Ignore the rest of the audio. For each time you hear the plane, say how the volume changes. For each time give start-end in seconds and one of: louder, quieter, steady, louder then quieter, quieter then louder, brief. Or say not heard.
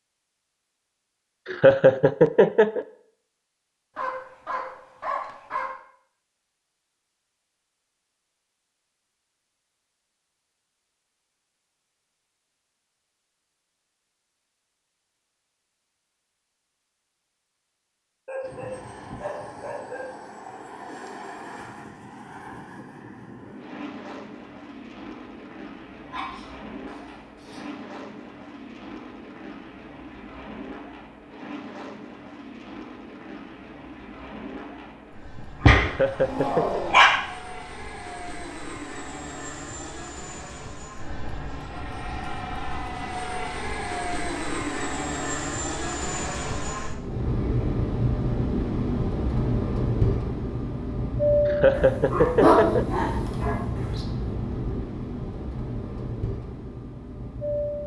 18.4-57.8 louder.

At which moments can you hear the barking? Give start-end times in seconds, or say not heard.
4.0-5.7, 18.2-20.1, 26.1-27.6, 35.6-37.0, 51.8-53.5.